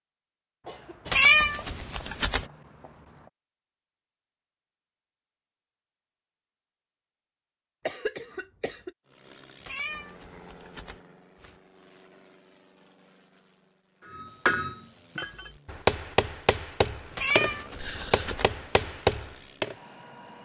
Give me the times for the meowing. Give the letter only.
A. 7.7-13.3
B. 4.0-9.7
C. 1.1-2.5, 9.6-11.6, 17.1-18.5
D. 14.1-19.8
C.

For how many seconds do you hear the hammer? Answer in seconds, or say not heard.
6 s.